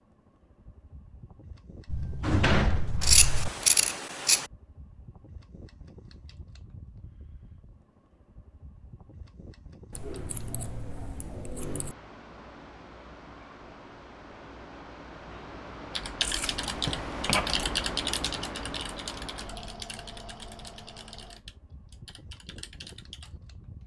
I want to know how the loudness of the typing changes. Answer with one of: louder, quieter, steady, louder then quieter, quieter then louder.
quieter.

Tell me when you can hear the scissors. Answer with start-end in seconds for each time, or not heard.
3.0-4.5, 9.9-11.9, 16.2-17.6.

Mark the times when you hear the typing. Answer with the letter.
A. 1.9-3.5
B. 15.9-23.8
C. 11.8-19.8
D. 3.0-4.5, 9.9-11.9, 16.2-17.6
B.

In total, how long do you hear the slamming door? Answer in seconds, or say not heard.
2 s.